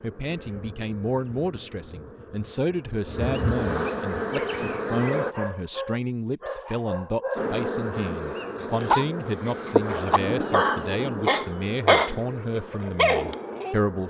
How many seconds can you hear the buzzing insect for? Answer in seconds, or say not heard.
12 s.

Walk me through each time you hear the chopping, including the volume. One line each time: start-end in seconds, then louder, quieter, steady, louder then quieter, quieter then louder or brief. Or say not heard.
not heard.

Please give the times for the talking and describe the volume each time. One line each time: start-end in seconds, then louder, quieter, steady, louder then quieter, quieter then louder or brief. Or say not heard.
0.0-14.0 steady.